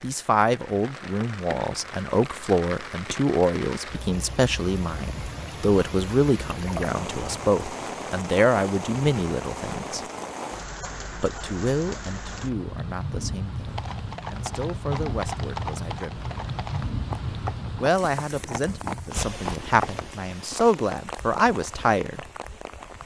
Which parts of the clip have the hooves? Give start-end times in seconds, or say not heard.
13.7-20.1.